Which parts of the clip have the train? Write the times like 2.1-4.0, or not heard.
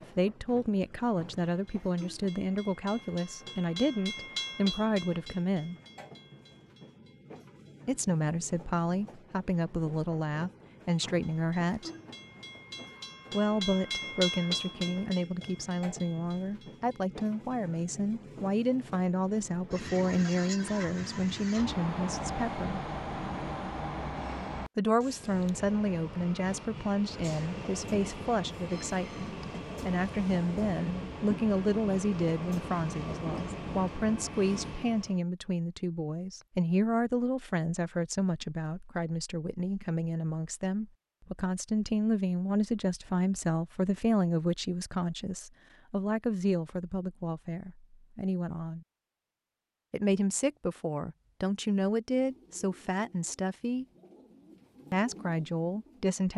0.0-35.2.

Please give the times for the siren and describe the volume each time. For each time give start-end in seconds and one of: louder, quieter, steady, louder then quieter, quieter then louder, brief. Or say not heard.
not heard.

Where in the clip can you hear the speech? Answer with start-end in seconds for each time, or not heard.
0.1-5.8, 7.8-11.9, 13.3-22.8, 24.8-48.9, 49.9-53.9, 54.9-56.3.